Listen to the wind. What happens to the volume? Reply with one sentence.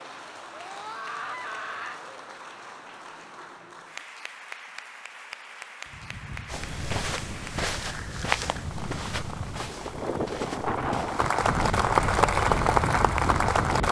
The volume of the wind goes up.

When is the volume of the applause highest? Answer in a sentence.
The loudest moment of the applause is at 12 seconds.